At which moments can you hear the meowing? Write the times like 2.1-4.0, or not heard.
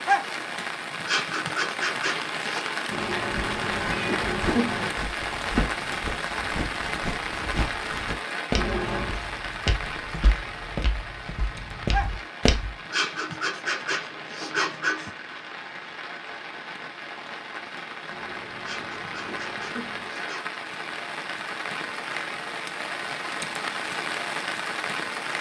2.9-4.9, 8.6-9.2, 18.1-20.1.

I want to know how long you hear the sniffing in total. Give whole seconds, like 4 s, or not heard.
6 s.